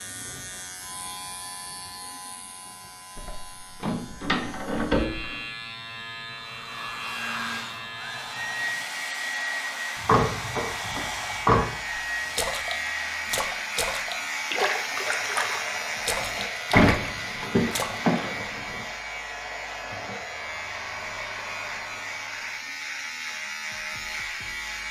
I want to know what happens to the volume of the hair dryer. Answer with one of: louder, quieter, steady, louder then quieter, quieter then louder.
quieter.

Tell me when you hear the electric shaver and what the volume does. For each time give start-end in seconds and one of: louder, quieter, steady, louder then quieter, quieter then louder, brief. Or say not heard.
0.0-24.8 louder.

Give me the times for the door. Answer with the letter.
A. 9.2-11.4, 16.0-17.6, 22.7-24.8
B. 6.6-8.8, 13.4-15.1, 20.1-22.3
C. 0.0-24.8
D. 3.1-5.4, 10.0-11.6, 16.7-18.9
D.